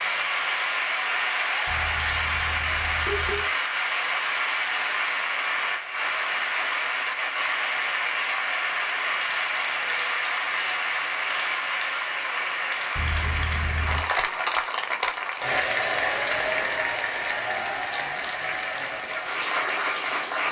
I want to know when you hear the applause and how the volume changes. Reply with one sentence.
The applause can be heard from 0.0 to 20.4 s, at a steady volume.